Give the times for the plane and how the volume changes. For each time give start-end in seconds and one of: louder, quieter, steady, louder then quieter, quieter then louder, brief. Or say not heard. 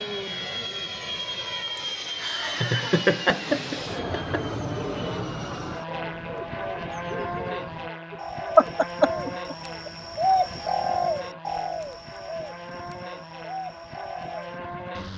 0.0-15.1 quieter.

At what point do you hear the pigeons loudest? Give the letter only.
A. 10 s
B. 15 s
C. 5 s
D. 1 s
A.